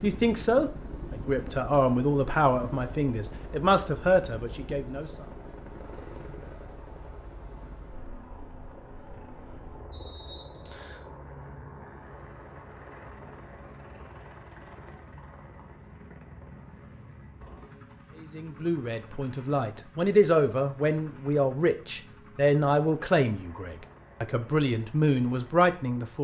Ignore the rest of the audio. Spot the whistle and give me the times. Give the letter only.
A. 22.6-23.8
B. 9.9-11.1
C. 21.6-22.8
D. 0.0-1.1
B.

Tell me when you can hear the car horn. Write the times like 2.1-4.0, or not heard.
not heard.